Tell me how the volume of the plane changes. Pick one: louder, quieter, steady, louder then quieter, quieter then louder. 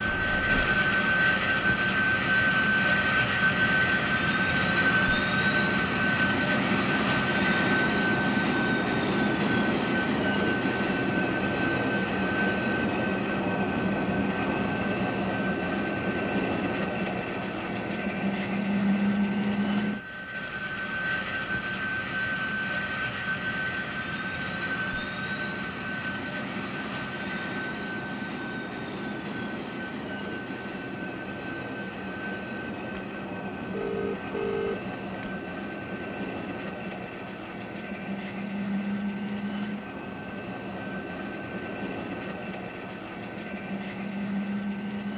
quieter.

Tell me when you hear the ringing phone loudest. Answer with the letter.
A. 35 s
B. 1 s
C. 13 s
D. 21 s
A.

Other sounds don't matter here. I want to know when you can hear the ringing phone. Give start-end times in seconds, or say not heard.
0.1-0.8, 32.9-35.3.